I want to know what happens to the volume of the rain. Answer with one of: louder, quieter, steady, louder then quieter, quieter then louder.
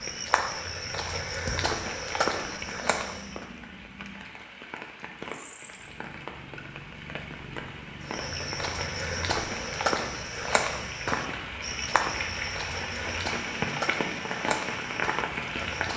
louder.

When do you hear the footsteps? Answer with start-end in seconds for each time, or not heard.
0.0-3.5, 8.0-15.9.